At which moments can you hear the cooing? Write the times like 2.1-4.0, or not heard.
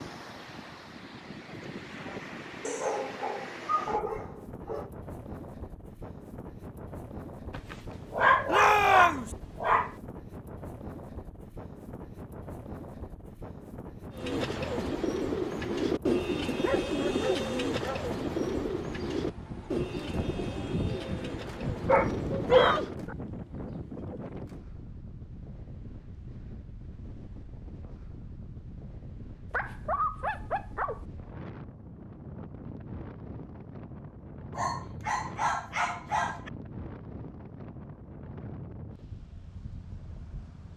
14.2-22.9.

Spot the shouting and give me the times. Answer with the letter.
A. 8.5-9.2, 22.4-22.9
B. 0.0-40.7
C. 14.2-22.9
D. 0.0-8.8
A.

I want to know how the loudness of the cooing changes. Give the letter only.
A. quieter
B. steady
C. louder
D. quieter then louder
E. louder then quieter
A.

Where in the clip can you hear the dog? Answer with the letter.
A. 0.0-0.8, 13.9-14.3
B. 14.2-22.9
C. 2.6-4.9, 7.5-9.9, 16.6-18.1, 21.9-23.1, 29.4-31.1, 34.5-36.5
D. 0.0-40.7
C.